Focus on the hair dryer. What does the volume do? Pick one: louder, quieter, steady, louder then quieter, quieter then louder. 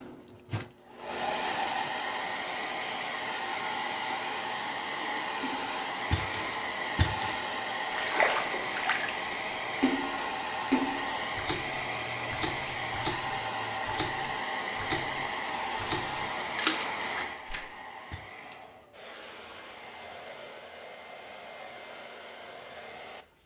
quieter.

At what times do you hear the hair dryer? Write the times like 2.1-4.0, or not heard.
0.0-23.4.